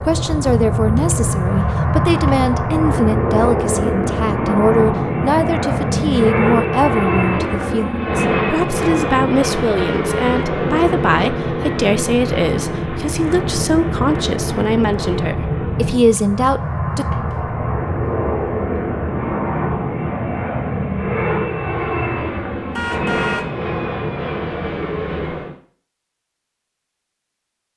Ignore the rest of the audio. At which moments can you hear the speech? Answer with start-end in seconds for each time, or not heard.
0.1-17.1.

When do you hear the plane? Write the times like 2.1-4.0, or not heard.
0.0-25.6.